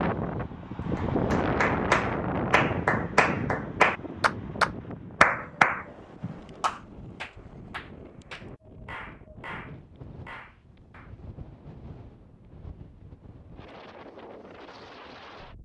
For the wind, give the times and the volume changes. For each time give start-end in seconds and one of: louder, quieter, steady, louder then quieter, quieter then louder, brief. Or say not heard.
0.0-15.6 quieter.